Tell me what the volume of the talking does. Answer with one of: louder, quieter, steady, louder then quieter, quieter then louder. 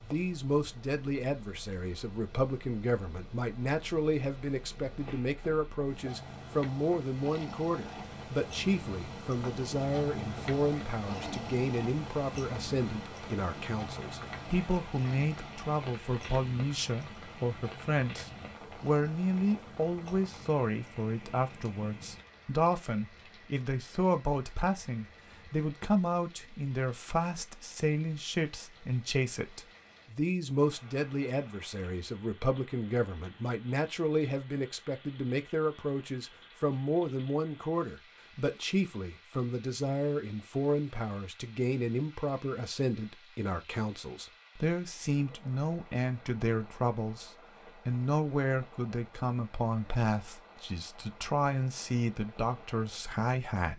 steady.